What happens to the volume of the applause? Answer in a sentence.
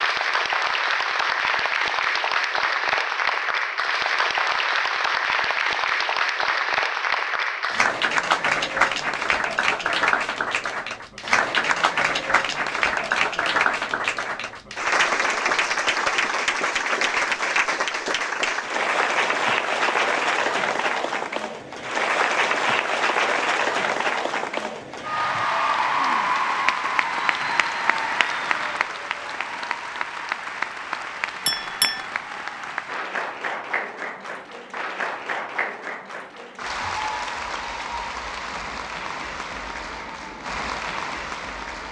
The volume of the applause goes down.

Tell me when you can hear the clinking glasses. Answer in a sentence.
You can hear the clinking glasses from 31.4 to 32.0 s.